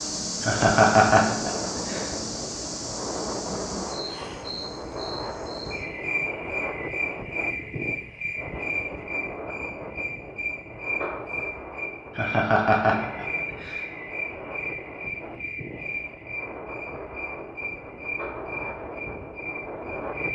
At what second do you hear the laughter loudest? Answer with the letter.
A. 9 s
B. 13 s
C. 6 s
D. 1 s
D.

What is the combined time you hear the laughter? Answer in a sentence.
The laughter can be heard for 3 seconds in total.